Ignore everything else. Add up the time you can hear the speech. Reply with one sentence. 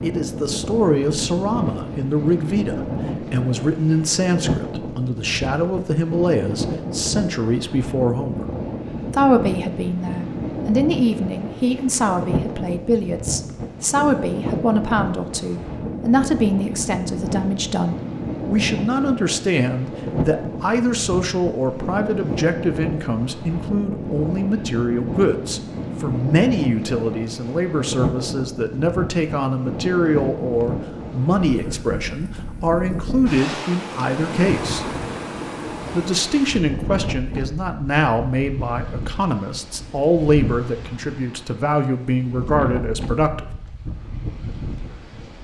You can hear the speech for 42 seconds altogether.